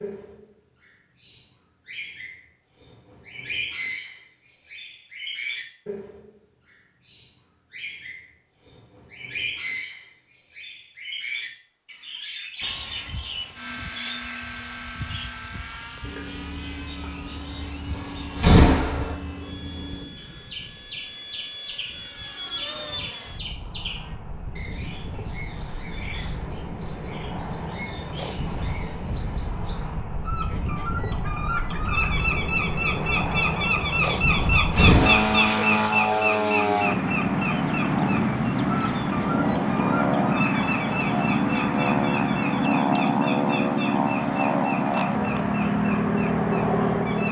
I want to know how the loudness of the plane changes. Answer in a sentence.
The loudness of the plane goes up.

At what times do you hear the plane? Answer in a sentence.
The plane can be heard from 12.6 to 47.2 s.